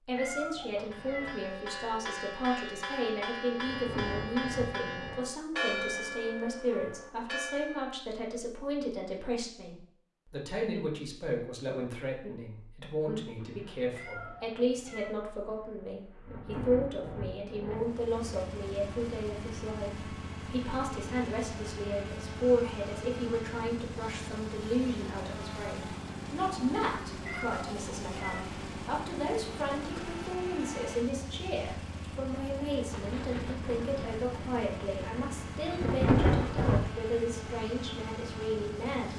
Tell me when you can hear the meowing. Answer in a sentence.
You can hear the meowing from 0.1 to 1.4 s, from 13.9 to 15.2 s and from 27.2 to 28.4 s.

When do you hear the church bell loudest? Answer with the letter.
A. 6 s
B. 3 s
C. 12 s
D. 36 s
A.